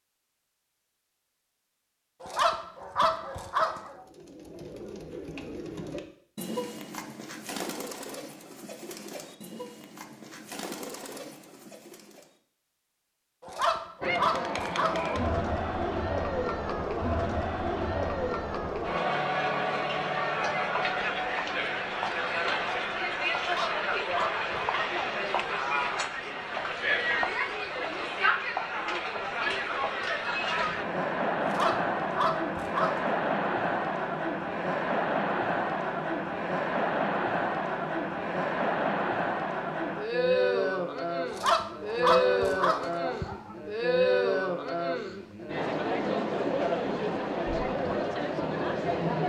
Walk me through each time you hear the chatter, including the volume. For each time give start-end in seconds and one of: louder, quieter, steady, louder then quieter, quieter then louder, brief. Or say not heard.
14.0-49.2 steady.